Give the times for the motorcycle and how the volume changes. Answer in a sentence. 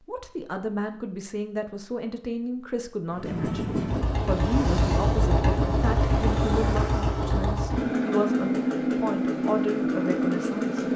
The motorcycle can be heard from 3.1 to 10.9 s, at a steady volume.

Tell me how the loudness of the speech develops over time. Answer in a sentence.
The loudness of the speech stays about the same.